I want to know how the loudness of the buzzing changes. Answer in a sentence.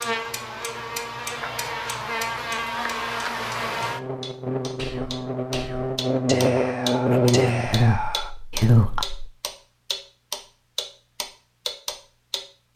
The loudness of the buzzing goes up.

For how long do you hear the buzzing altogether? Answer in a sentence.
The buzzing can be heard for 9 seconds in total.